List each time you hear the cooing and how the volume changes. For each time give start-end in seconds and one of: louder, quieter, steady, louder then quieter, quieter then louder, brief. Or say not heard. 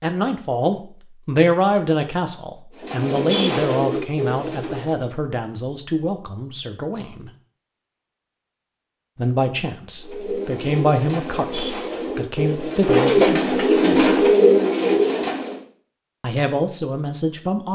2.8-5.0 brief
10.0-15.6 louder.